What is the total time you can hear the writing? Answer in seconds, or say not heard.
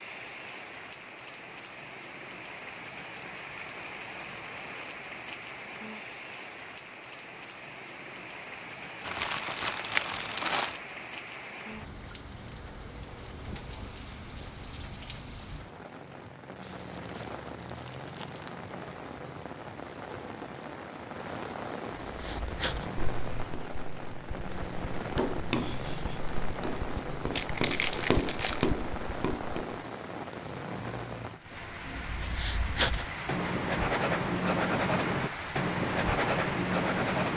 13 s.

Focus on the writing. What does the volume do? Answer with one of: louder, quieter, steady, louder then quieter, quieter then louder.
louder.